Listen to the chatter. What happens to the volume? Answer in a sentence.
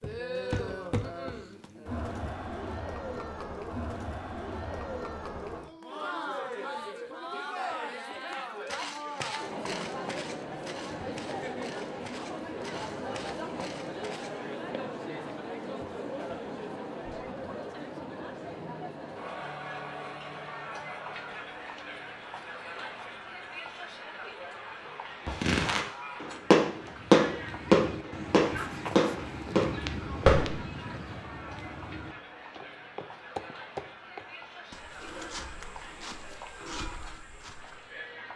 The loudness of the chatter goes down.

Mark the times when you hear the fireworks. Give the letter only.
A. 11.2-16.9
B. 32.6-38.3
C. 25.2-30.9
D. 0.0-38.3
C.